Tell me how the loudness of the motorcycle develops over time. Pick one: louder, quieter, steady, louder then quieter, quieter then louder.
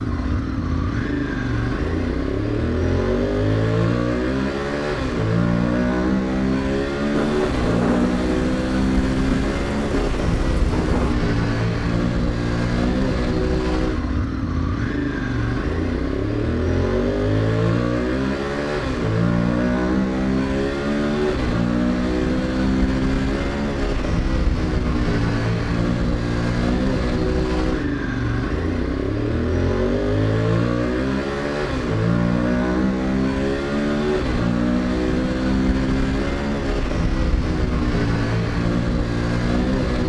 steady.